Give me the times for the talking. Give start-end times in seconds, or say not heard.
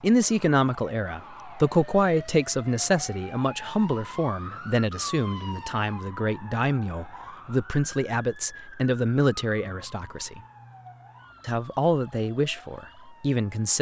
0.0-10.4, 11.4-13.7.